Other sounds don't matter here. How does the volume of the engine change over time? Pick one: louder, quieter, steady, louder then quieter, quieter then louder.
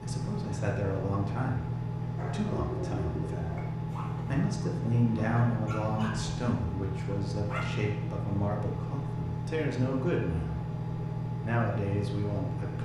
steady.